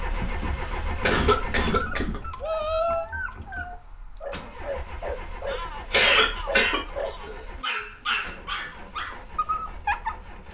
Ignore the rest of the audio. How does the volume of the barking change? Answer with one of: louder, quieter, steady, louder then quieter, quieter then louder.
louder.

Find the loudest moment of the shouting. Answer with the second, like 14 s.
3 s.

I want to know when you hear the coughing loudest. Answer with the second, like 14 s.
6 s.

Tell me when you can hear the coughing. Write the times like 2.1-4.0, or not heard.
0.5-2.2, 5.9-7.3.